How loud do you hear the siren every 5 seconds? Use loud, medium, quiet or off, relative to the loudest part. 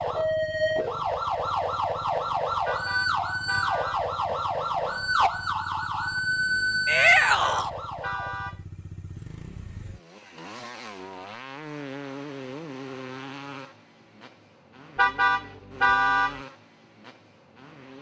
loud, loud, off, off.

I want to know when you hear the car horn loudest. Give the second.
16 s.